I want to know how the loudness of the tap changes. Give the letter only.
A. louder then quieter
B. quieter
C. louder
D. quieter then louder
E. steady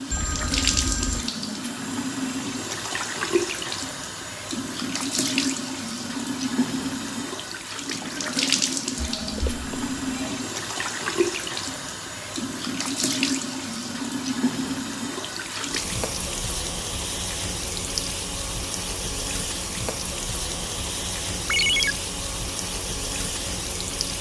E.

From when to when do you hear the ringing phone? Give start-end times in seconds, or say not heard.
0.1-1.3, 8.9-10.3, 21.4-21.9.